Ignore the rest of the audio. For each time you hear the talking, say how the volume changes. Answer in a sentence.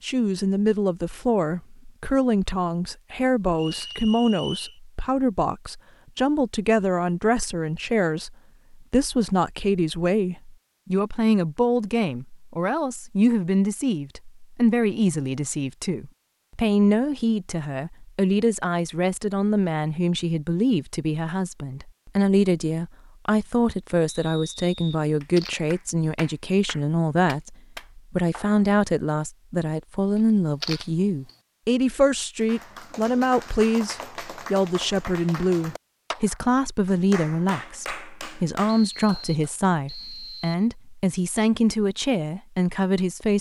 The talking can be heard from 0.0 to 43.3 s, at a steady volume.